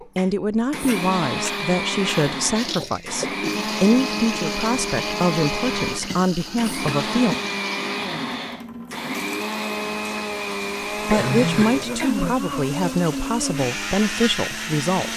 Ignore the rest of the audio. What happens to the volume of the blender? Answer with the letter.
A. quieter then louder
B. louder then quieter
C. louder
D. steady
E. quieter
D.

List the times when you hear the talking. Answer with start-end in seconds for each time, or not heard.
0.1-7.3, 11.1-15.1.